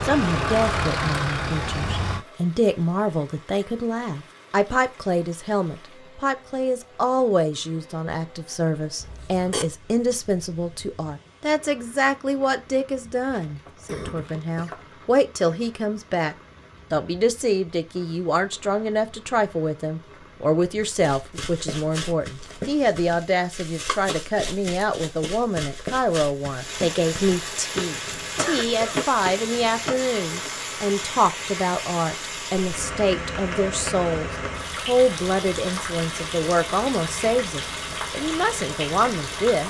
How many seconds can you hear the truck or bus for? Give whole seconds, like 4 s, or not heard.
2 s.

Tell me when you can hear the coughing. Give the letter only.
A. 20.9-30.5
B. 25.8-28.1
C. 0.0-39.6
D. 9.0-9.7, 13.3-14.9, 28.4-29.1
D.